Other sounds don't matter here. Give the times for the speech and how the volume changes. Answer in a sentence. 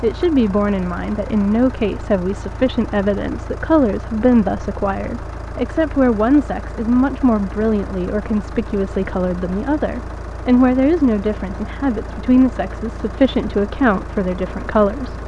The speech can be heard from 0.0 to 15.2 s, at a steady volume.